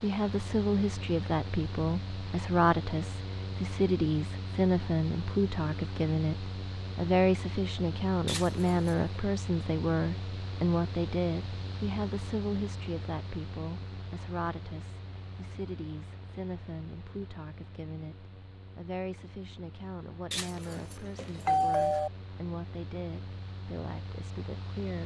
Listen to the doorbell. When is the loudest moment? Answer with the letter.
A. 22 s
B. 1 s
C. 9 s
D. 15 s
A.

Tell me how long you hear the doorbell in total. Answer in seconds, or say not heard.
3 s.